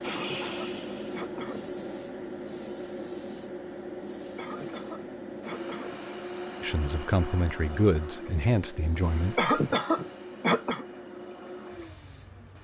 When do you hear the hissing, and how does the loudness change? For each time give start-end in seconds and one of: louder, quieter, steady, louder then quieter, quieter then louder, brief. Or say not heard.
0.0-12.5 quieter.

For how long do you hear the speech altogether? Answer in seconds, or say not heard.
3 s.